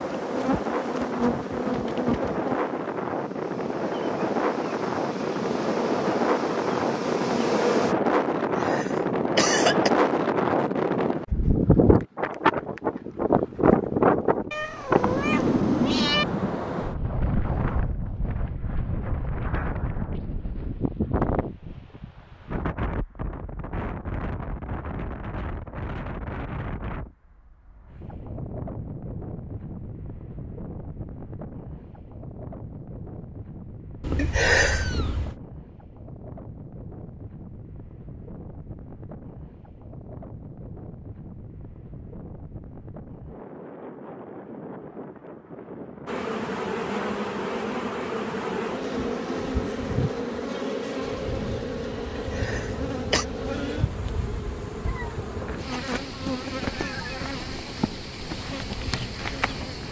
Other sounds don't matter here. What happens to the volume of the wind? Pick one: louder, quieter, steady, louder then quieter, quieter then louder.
quieter.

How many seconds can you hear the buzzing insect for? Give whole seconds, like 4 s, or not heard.
22 s.